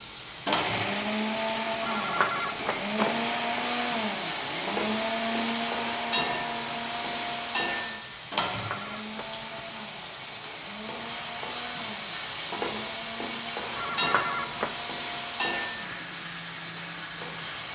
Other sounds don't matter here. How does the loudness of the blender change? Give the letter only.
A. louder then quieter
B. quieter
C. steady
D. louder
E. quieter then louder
B.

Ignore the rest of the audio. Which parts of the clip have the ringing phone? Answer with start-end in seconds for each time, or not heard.
1.8-3.2, 8.5-9.4, 13.8-14.8.